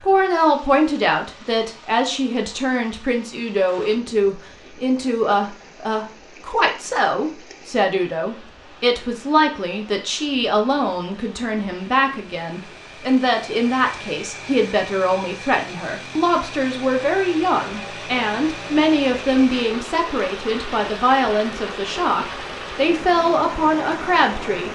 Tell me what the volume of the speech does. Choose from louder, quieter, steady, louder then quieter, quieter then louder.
steady.